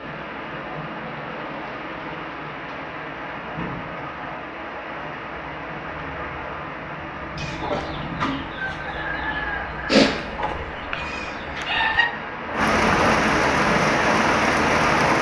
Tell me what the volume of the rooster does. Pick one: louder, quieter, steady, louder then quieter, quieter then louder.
louder then quieter.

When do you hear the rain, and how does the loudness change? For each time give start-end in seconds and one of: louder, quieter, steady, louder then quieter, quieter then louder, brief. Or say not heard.
0.0-15.1 louder.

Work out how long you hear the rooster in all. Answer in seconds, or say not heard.
5 s.